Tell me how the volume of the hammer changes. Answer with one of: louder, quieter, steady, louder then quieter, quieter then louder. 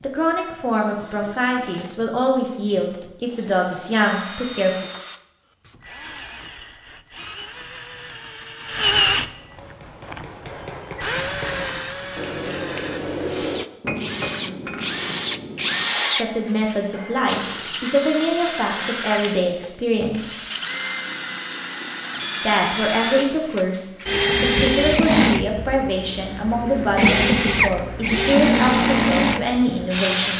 louder then quieter.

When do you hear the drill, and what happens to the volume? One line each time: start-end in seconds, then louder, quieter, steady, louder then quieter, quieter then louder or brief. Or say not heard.
0.0-30.3 louder.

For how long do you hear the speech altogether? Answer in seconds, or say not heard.
17 s.